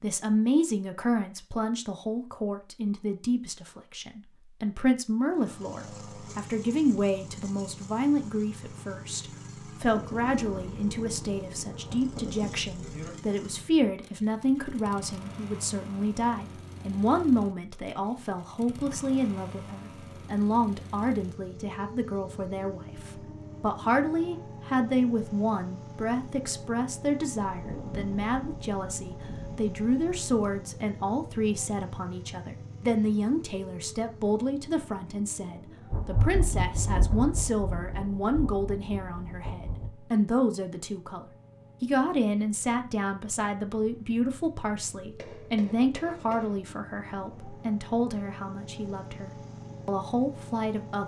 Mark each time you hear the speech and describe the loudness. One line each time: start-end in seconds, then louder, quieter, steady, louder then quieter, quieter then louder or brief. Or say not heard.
0.0-51.0 steady.